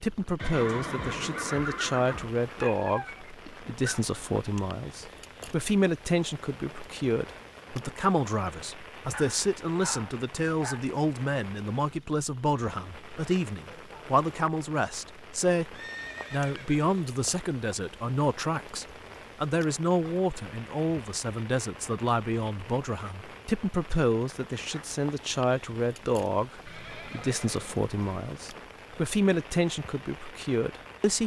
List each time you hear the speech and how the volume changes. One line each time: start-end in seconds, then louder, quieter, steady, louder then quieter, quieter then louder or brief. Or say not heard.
0.0-31.2 steady.